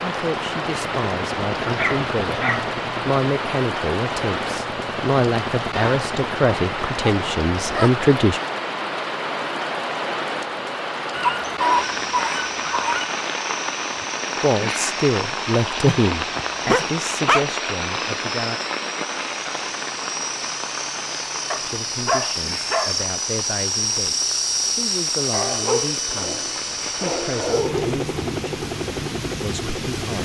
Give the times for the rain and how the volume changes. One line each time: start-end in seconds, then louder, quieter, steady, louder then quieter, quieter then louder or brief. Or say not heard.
0.0-30.1 quieter.